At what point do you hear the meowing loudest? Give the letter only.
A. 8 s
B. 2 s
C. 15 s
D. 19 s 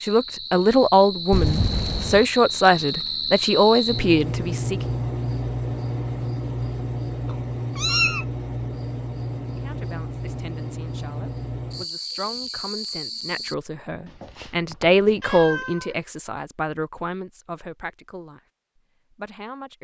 A.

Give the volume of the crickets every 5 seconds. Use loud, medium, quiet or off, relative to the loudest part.
loud, loud, loud, off.